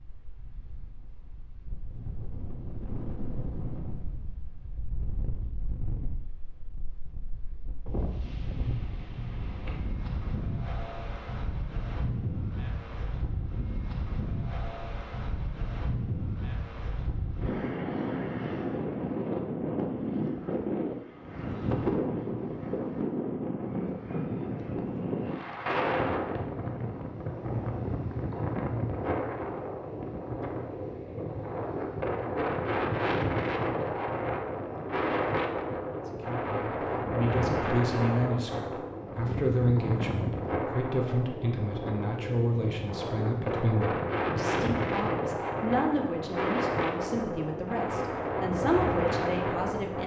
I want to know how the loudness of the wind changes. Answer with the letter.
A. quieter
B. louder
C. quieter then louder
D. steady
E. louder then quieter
B.